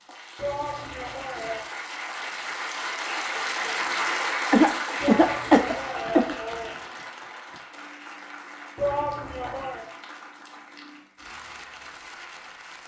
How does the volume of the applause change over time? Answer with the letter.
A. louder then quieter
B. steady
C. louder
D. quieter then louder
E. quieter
A.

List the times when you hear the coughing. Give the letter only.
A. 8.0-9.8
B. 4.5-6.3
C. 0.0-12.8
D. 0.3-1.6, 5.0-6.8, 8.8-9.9
B.